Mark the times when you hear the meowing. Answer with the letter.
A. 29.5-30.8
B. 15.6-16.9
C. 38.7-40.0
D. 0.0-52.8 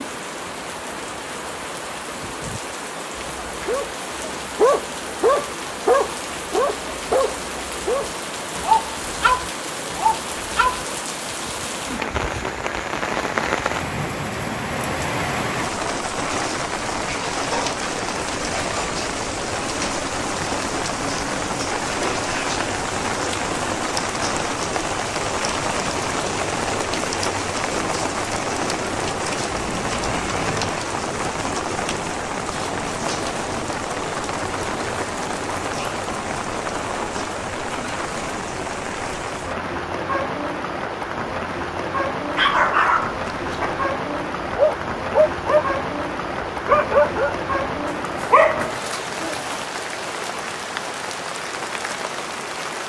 A.